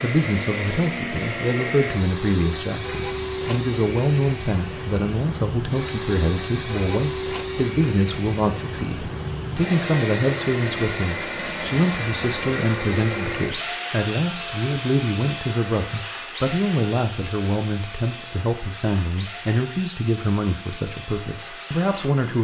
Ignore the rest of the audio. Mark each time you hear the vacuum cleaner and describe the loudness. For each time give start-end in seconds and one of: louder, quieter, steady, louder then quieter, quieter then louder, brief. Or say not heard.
0.0-22.4 quieter.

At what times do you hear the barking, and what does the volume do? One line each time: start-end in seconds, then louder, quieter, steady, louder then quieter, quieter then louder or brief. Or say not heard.
not heard.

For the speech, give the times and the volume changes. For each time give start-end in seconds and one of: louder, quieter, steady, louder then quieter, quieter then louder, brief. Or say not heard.
0.0-22.4 steady.